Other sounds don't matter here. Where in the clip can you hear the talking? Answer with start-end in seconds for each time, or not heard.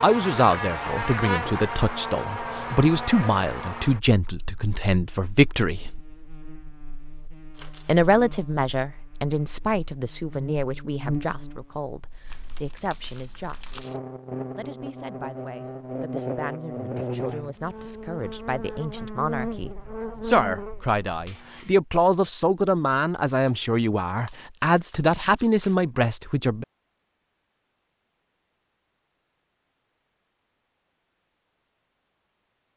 0.0-6.0, 7.8-13.8, 14.6-26.6.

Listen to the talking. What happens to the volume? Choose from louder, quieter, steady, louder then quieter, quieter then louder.
quieter then louder.